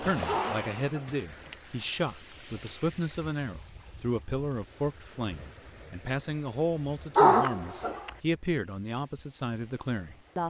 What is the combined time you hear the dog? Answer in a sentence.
The dog can be heard for 2 seconds in total.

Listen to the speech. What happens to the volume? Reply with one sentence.
The volume of the speech stays about the same.